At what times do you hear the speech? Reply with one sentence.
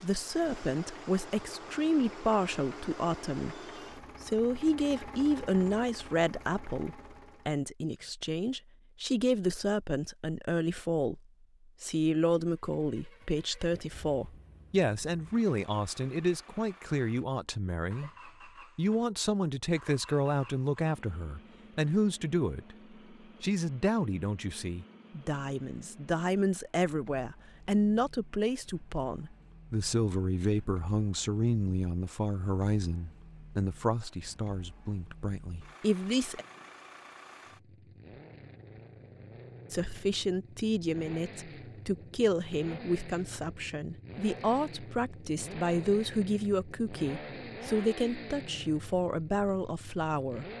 The speech can be heard from 0.0 to 3.6 s, from 4.2 to 11.2 s, from 11.8 to 18.1 s, from 18.8 to 22.8 s, from 23.4 to 36.5 s and from 39.7 to 50.5 s.